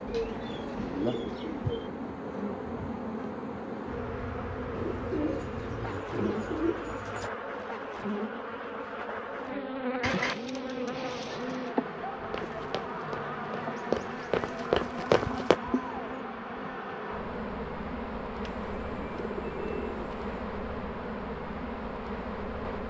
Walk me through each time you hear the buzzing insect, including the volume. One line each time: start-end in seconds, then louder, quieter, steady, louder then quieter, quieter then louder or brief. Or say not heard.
0.0-22.8 steady.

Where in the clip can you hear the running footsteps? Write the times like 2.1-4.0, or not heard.
12.3-15.6.